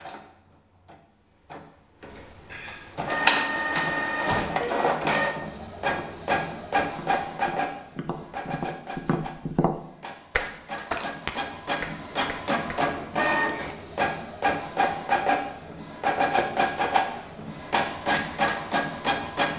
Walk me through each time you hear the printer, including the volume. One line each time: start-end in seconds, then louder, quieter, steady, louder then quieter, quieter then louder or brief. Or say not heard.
0.0-19.5 quieter then louder.